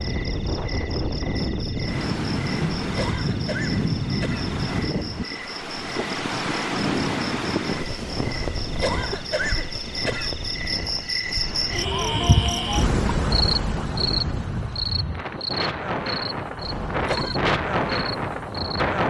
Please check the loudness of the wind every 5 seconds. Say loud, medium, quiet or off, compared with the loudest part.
loud, loud, medium, loud.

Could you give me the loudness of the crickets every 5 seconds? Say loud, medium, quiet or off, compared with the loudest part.
quiet, medium, loud, medium.